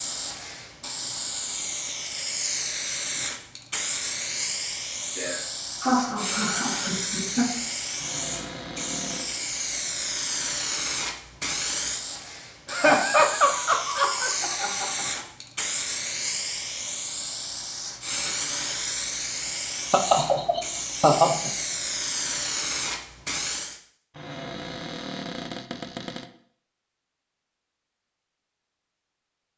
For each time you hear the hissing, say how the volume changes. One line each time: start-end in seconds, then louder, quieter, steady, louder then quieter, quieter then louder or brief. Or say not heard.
0.0-23.8 steady.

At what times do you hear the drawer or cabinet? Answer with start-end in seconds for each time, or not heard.
8.0-9.2, 24.1-26.3.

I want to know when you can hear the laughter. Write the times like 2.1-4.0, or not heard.
5.2-7.5, 12.7-15.2, 19.9-21.5.